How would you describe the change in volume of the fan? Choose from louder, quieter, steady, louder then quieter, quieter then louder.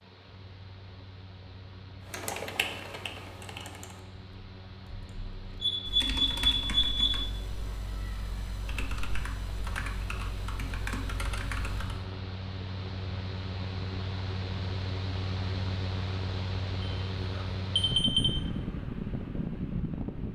louder.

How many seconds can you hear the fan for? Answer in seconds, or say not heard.
20 s.